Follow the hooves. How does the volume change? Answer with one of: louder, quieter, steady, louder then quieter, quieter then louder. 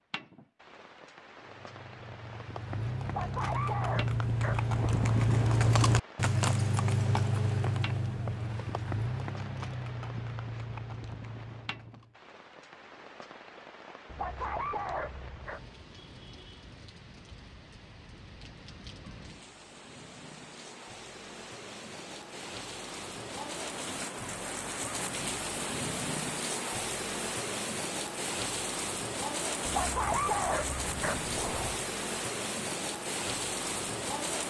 louder then quieter.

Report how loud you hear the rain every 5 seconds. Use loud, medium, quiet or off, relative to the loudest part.
quiet, quiet, quiet, quiet, medium, loud, loud.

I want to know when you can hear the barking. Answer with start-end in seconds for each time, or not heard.
3.0-5.2, 14.1-15.7, 29.6-31.8.